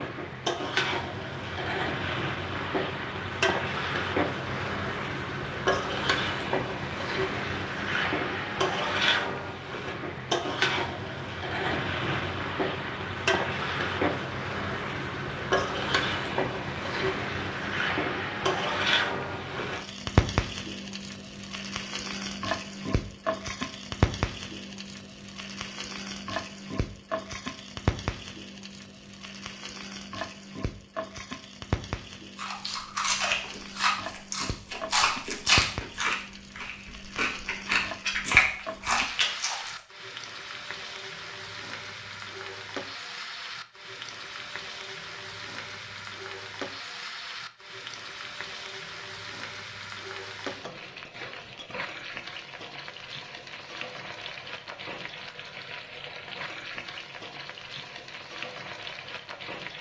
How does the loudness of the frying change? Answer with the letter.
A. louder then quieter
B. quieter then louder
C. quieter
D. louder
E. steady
C.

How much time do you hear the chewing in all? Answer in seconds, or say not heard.
7 s.